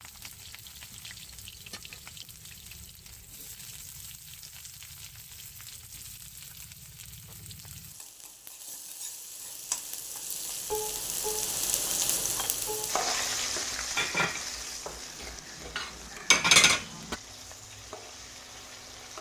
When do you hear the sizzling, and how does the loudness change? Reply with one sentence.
The sizzling can be heard from 0.0 to 19.1 s, getting louder then quieter.